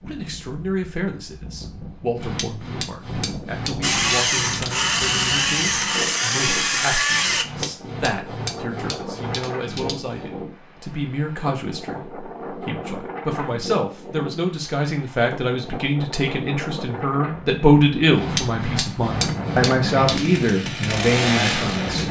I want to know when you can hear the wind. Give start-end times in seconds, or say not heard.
0.0-22.0.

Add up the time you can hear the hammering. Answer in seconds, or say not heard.
8 s.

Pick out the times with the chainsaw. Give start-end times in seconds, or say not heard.
3.8-7.5, 20.1-22.0.